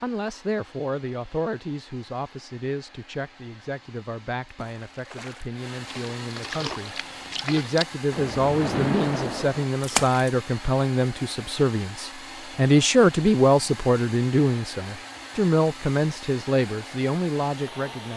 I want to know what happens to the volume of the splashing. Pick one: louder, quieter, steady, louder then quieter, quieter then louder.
louder.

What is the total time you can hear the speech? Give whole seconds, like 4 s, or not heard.
18 s.